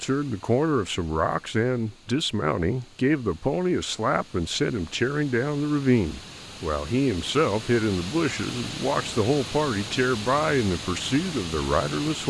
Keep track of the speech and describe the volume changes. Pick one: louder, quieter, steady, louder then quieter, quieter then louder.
steady.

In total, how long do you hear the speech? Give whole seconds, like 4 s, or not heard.
12 s.